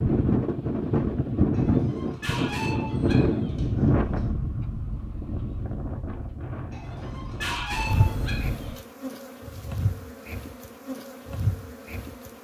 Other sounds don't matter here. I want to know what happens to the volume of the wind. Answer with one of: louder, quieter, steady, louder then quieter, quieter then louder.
quieter.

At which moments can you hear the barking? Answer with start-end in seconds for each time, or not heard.
1.5-4.3, 6.7-8.8.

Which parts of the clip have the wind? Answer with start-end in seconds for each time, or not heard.
0.0-8.8.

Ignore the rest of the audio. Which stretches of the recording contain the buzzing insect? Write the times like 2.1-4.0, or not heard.
7.8-12.4.